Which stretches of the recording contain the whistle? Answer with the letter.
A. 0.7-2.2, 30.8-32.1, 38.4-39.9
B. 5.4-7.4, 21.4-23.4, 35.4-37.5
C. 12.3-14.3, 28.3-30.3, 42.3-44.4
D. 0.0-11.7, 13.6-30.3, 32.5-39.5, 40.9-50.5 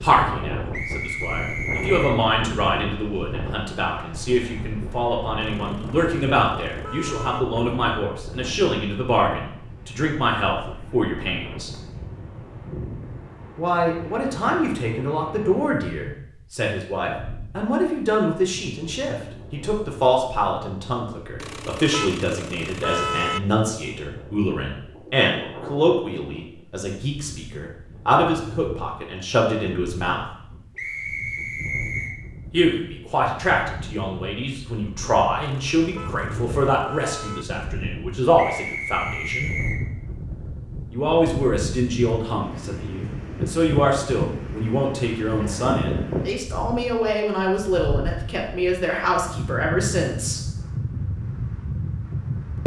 A.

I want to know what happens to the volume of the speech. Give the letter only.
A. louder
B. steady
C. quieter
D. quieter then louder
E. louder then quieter
B.